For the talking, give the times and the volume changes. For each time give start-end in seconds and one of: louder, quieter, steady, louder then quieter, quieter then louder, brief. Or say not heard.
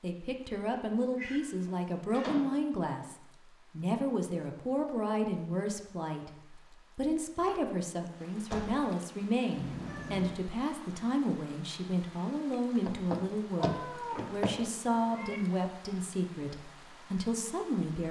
0.0-18.0 steady.